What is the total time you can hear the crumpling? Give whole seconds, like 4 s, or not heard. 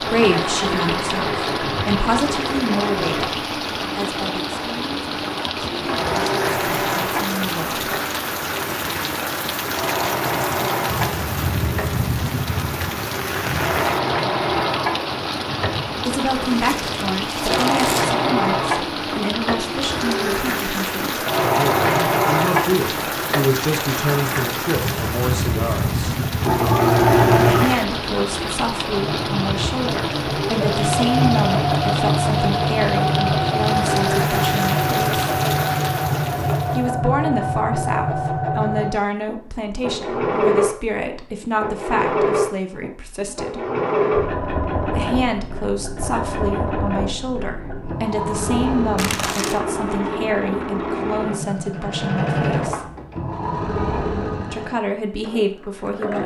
2 s.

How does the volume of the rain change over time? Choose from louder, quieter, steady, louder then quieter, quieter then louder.
steady.